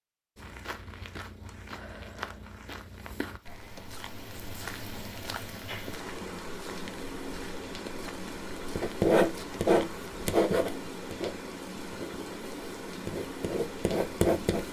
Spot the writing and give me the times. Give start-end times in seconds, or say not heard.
8.8-14.6.